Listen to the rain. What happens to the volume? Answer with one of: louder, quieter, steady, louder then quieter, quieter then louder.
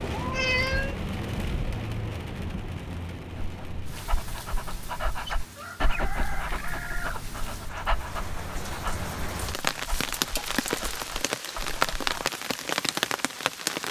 quieter then louder.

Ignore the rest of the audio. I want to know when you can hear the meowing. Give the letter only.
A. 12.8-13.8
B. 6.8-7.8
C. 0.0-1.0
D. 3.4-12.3
C.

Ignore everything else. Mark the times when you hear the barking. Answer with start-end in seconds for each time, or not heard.
3.4-12.3.